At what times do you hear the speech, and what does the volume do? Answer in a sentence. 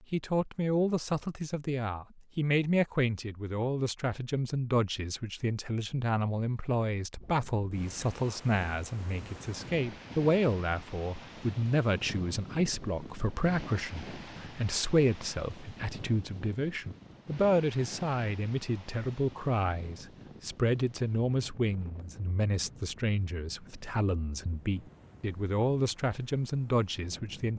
You can hear the speech from 0.1 to 27.5 s, at a steady volume.